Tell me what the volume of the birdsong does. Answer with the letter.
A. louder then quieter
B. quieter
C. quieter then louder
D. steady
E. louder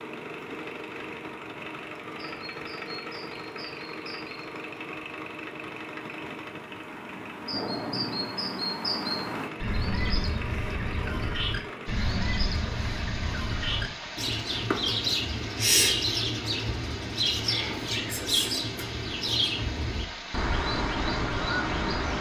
E.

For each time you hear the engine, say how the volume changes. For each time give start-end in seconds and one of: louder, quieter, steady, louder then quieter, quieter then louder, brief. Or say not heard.
0.0-22.1 steady.